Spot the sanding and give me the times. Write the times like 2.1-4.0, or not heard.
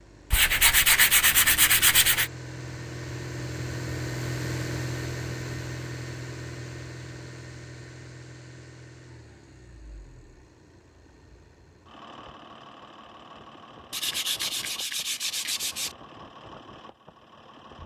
0.3-2.3, 13.9-15.9.